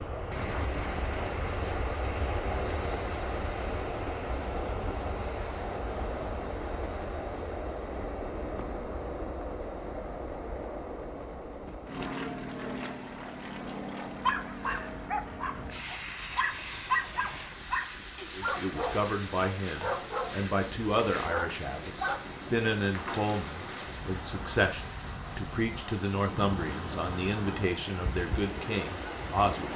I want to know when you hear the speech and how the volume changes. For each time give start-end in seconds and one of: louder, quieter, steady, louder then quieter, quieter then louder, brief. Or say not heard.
18.4-29.7 steady.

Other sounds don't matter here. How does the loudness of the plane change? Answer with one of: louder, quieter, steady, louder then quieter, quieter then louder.
quieter.